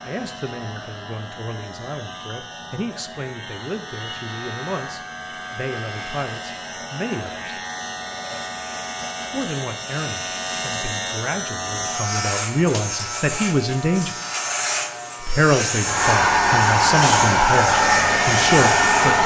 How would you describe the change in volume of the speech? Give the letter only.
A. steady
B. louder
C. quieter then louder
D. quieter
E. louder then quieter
B.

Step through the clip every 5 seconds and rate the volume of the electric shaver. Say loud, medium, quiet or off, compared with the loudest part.
medium, medium, loud, loud.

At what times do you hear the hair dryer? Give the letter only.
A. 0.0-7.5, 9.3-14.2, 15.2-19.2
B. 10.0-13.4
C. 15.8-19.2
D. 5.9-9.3
C.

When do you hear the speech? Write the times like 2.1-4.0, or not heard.
0.0-7.5, 9.3-14.2, 15.2-19.2.